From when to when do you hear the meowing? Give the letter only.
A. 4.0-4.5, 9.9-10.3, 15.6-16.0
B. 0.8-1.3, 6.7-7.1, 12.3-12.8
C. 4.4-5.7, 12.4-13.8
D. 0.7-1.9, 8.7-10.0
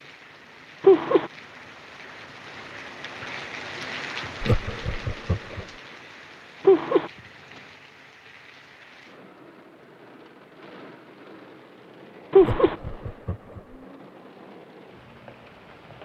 B.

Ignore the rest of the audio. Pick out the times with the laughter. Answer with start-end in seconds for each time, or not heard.
4.4-5.7, 12.4-13.8.